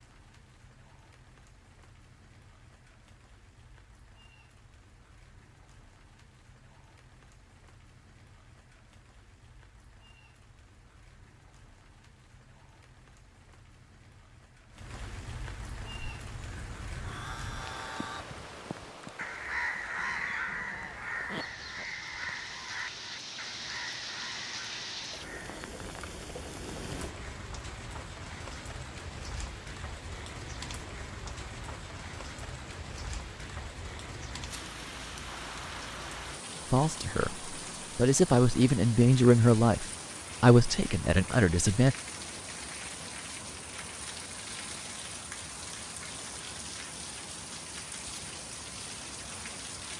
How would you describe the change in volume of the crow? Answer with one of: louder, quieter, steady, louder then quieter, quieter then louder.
louder then quieter.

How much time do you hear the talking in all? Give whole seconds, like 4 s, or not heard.
5 s.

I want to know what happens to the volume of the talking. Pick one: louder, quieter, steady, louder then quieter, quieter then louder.
louder then quieter.